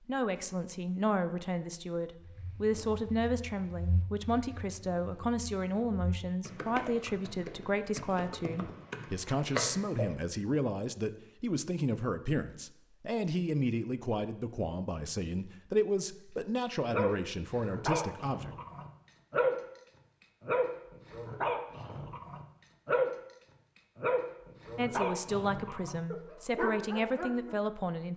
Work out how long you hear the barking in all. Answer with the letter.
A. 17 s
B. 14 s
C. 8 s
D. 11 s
D.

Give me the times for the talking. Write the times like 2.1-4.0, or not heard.
0.1-18.6, 24.8-28.1.